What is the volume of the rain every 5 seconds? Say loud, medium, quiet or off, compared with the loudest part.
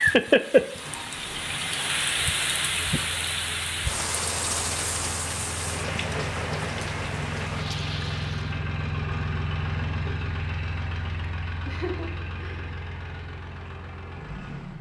loud, medium, off.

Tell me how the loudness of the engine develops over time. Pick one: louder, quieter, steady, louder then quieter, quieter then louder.
louder then quieter.